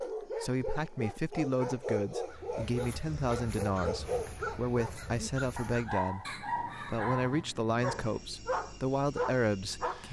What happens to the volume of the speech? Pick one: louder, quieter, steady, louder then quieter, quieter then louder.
steady.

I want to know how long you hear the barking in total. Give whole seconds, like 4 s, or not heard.
10 s.